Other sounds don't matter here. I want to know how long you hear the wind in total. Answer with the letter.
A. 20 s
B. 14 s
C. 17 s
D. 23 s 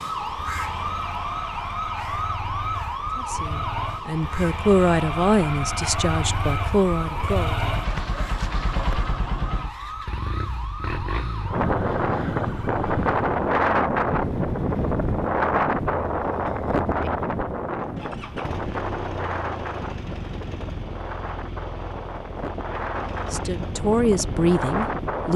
B.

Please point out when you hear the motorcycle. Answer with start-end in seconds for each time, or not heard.
0.0-25.3.